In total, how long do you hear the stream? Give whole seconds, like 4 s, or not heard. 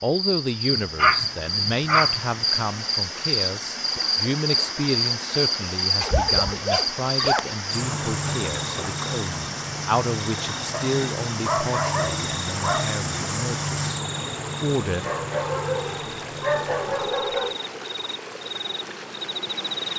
20 s.